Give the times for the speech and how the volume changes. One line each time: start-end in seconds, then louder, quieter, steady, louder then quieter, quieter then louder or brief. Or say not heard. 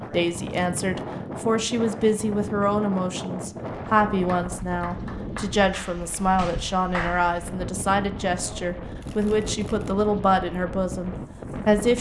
0.0-11.9 steady.